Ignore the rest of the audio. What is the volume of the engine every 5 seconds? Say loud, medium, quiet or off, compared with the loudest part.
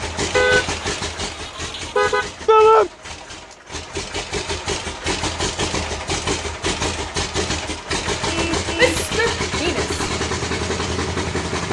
medium, loud, loud.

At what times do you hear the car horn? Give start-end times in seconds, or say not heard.
0.3-2.3, 8.2-9.1.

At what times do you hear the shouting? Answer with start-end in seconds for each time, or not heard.
2.5-2.9, 8.8-9.9.